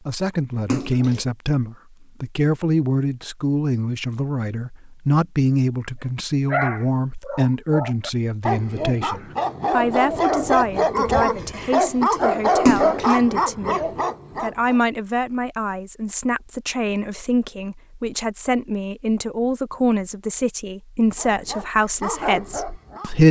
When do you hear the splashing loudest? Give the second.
13 s.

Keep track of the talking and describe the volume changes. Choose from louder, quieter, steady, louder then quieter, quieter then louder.
steady.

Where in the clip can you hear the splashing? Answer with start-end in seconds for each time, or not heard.
0.7-1.2, 12.7-13.2.